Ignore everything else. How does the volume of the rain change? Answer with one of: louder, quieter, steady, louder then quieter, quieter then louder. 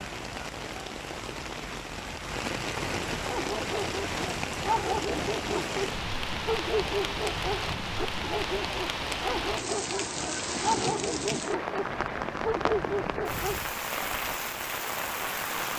steady.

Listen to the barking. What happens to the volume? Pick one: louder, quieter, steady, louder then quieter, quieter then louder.
steady.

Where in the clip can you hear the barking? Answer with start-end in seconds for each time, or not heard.
3.2-13.7.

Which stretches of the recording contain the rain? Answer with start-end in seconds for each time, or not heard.
0.0-15.7.